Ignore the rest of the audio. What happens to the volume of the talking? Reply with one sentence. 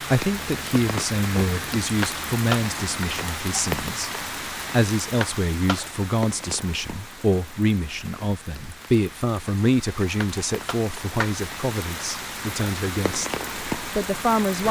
The loudness of the talking stays about the same.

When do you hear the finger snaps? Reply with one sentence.
You can hear the finger snaps from 2.0 to 3.0 s, from 5.2 to 5.8 s and from 10.2 to 11.3 s.